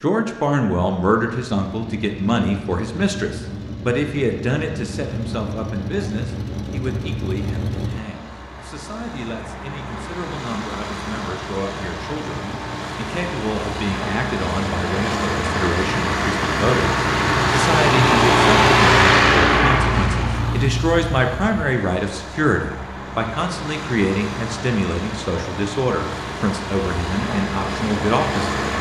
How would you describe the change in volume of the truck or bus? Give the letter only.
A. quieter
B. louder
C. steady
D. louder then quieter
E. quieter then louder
D.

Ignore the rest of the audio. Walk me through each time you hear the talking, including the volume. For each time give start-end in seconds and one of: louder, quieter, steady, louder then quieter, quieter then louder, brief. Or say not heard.
0.0-28.6 quieter then louder.